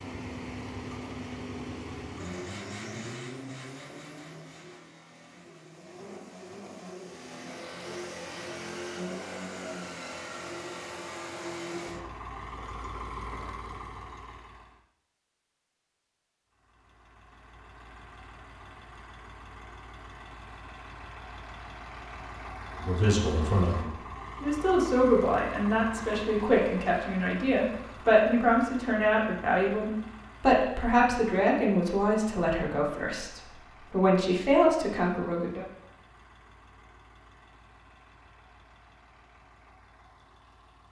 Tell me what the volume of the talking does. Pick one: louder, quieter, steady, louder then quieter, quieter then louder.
steady.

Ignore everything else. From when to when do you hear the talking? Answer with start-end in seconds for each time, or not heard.
22.8-35.6.